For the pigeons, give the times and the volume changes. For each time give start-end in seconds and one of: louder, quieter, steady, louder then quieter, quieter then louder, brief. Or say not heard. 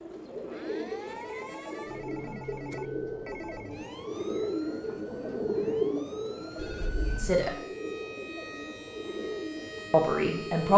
0.0-10.7 louder then quieter.